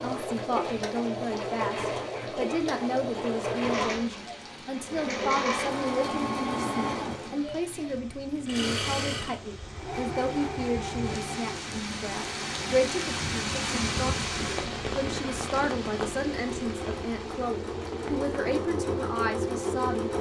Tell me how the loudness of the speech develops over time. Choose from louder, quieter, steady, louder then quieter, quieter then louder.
steady.